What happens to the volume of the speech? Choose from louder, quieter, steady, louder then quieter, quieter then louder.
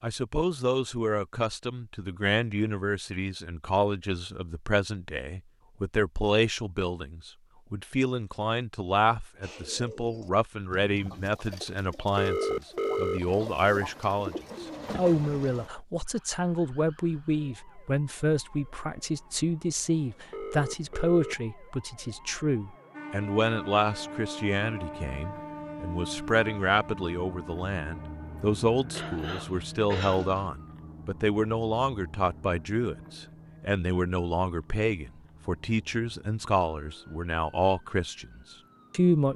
steady.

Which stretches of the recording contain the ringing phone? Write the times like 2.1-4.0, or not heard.
12.2-13.2, 20.3-21.4.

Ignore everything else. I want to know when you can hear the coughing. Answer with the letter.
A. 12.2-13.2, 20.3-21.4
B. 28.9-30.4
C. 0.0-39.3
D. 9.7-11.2
B.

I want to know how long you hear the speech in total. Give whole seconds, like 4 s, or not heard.
39 s.